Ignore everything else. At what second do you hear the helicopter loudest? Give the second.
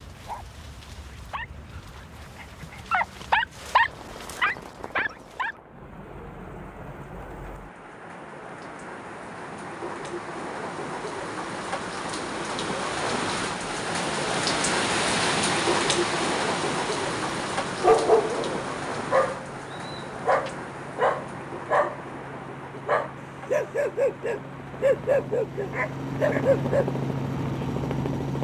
27 s.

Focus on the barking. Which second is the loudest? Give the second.
18 s.